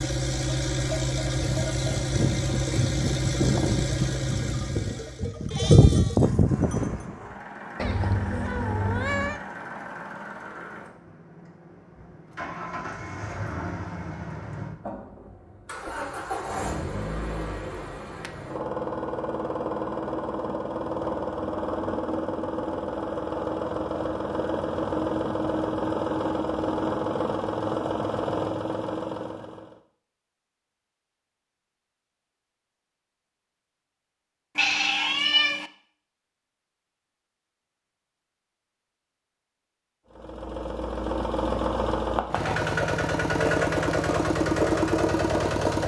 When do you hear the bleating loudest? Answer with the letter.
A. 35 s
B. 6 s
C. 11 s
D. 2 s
B.